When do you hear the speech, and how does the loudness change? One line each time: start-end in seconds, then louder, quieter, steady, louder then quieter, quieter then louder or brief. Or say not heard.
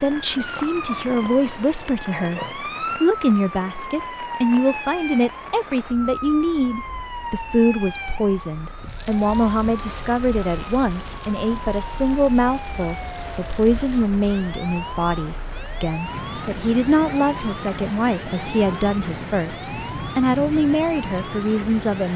0.0-22.1 steady.